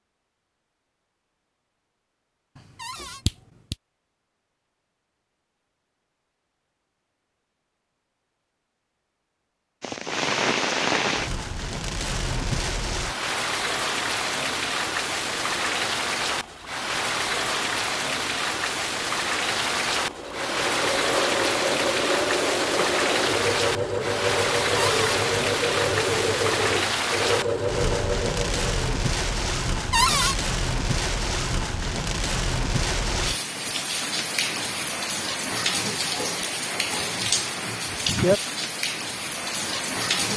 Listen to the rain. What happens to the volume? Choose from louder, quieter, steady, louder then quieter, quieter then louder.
steady.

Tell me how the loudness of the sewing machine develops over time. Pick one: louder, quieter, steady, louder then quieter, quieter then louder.
steady.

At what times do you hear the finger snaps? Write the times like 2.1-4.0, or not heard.
2.5-3.8.